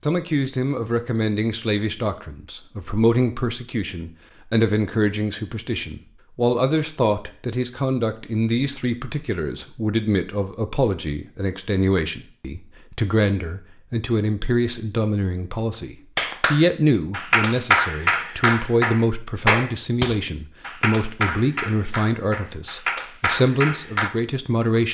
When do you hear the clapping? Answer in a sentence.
The clapping can be heard from 16.1 to 24.1 s.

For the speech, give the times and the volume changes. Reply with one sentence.
The speech can be heard from 0.0 to 24.8 s, at a steady volume.